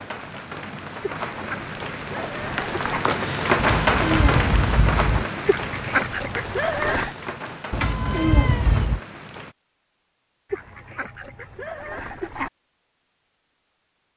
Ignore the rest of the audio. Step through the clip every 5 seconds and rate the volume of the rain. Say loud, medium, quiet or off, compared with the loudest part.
loud, medium, off.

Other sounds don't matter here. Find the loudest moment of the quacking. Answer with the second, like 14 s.
6 s.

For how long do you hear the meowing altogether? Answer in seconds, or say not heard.
3 s.